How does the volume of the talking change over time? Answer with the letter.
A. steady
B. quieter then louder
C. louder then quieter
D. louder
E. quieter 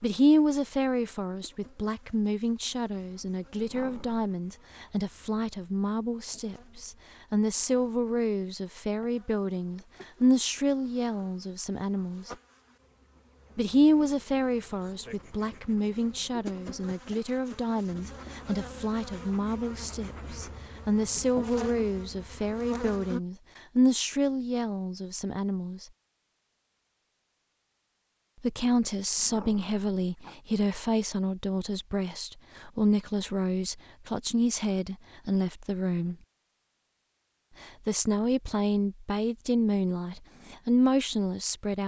A.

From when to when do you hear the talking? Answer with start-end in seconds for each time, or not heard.
0.0-12.3, 13.6-25.9, 28.4-36.1, 37.6-41.8.